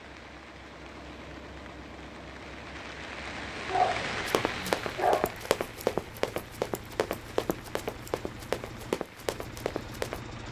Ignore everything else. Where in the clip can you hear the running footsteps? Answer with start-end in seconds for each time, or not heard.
4.2-10.2.